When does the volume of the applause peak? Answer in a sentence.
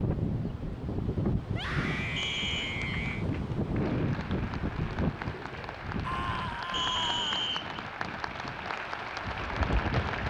The loudest moment of the applause is at 10 seconds.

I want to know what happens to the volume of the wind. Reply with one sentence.
The volume of the wind goes down.